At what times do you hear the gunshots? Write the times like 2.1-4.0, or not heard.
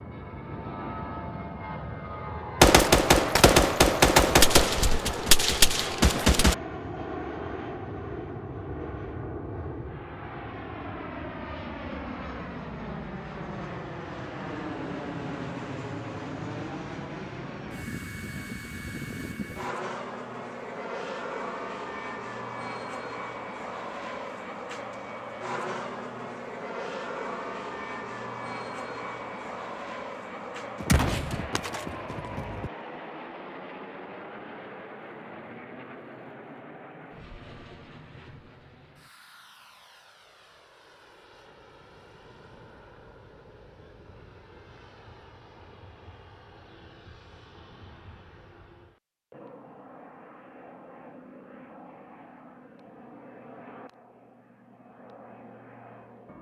2.6-6.5, 30.8-32.7.